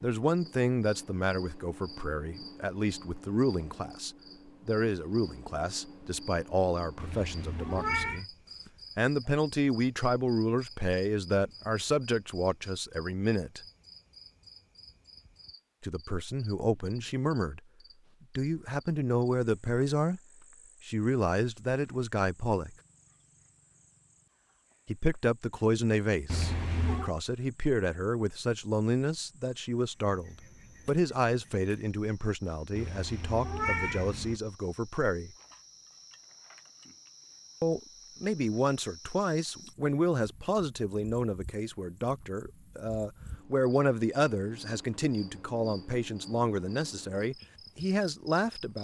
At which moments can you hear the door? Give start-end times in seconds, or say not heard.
not heard.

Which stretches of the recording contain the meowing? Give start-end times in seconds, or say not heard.
7.0-8.2, 26.2-27.1, 32.8-34.4.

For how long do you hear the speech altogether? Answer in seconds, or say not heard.
41 s.